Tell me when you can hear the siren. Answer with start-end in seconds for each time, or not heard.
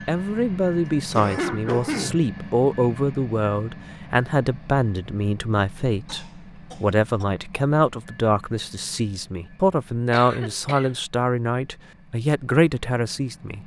not heard.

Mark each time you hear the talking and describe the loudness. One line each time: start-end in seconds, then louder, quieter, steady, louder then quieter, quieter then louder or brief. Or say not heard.
0.1-13.6 steady.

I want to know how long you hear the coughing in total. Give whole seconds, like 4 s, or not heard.
3 s.